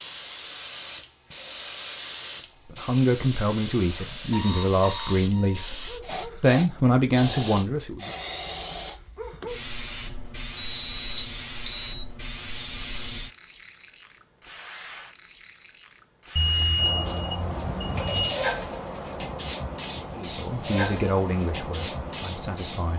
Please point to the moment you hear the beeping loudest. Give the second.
17 s.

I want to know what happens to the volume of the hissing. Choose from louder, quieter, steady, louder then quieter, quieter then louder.
steady.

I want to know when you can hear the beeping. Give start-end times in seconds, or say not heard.
4.3-5.7, 10.6-12.1, 16.4-18.4.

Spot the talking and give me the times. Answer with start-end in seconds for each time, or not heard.
2.6-8.1, 20.1-22.9.